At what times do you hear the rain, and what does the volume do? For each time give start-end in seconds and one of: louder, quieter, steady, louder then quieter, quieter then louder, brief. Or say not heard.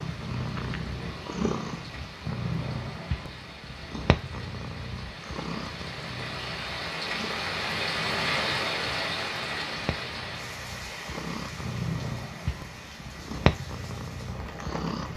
0.0-15.1 louder then quieter.